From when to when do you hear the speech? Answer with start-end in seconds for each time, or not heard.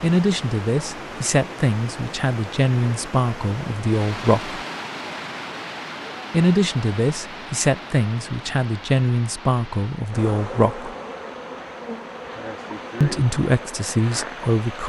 0.0-4.6, 6.3-10.9, 13.0-14.8.